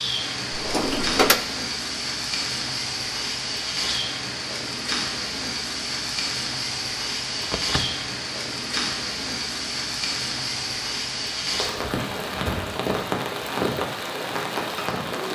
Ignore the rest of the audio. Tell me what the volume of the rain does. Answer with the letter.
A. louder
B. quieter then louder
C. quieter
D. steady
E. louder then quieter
D.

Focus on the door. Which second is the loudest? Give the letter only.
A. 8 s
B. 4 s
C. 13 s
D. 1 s
D.